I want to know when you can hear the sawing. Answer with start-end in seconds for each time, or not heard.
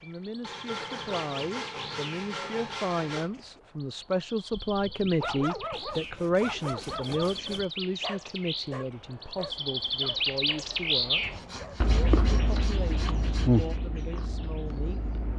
0.4-3.3, 5.7-7.7, 11.2-13.8.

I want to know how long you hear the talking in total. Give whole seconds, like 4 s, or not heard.
15 s.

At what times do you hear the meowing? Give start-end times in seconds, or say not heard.
not heard.